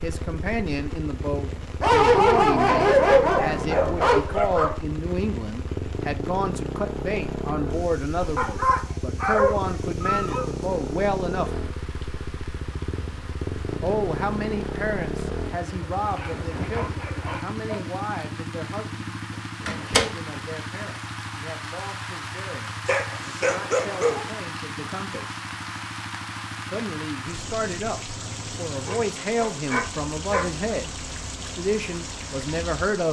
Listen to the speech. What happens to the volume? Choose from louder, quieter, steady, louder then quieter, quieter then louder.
quieter then louder.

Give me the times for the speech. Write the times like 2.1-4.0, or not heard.
0.0-11.5, 13.8-25.4, 26.6-33.0.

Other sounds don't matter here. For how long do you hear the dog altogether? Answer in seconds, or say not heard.
10 s.